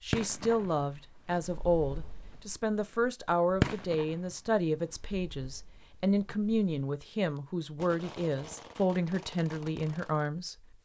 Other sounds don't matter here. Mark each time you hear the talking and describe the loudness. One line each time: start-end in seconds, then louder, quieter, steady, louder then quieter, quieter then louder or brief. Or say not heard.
0.0-10.8 steady.